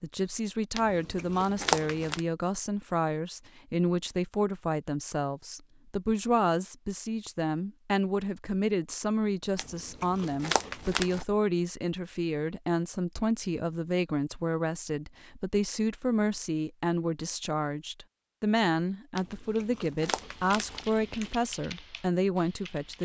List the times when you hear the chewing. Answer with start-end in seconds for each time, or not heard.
0.8-2.2, 9.6-11.2, 19.1-21.4.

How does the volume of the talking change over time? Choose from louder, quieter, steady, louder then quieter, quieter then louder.
steady.